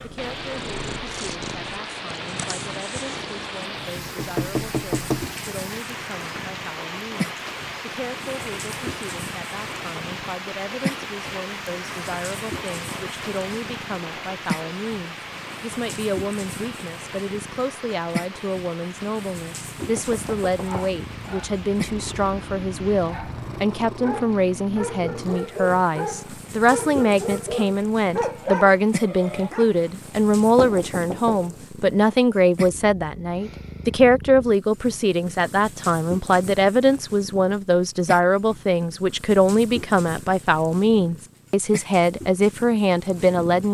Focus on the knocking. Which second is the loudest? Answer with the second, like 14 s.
5 s.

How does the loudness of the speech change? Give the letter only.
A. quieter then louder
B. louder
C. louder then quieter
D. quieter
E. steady
B.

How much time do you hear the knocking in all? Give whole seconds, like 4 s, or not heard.
4 s.